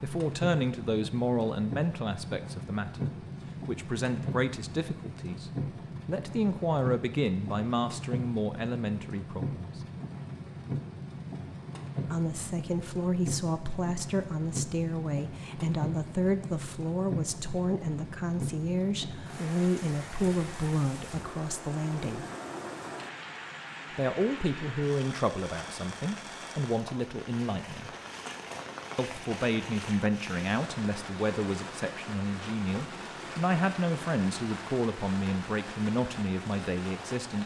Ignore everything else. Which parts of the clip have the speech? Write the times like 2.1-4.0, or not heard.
0.0-9.8, 12.1-22.2, 23.9-27.9, 28.9-37.4.